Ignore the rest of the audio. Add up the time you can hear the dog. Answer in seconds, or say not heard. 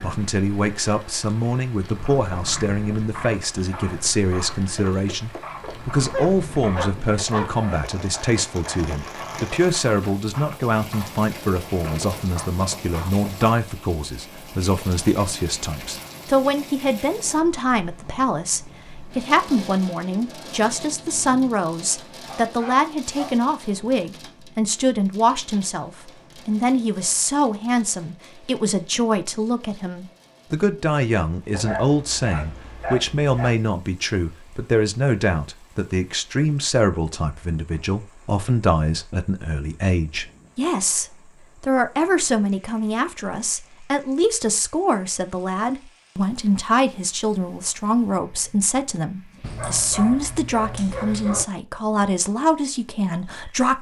7 s.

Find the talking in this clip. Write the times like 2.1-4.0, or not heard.
0.0-53.7.